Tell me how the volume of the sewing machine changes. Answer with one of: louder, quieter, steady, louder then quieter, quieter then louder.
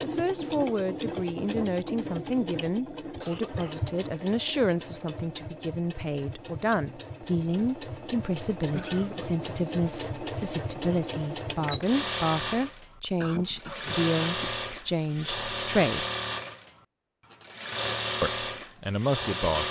quieter then louder.